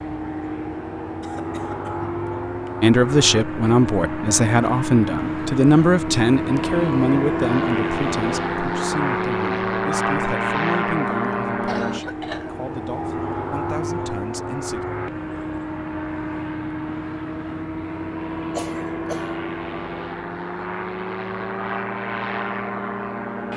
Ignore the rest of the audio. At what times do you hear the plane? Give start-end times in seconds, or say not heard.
0.0-23.5.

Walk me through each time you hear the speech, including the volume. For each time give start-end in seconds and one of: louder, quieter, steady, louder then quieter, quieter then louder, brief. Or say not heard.
2.8-14.8 quieter.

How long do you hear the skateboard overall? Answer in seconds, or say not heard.
not heard.